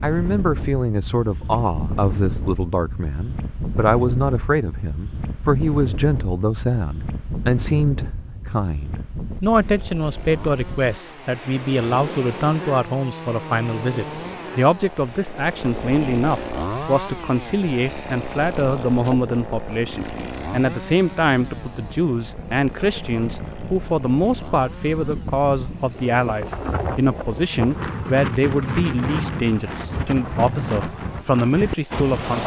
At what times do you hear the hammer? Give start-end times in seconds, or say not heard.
not heard.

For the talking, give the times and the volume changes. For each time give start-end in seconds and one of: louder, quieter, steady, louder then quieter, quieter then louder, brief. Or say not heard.
0.0-32.4 steady.